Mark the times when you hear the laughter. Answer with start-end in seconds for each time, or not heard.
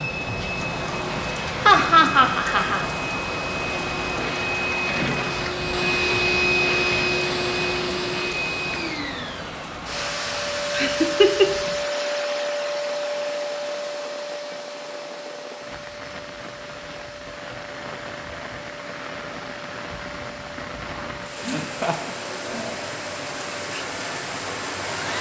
1.6-2.9, 10.7-11.5, 21.4-22.6.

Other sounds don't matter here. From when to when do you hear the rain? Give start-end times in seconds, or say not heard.
0.0-25.1.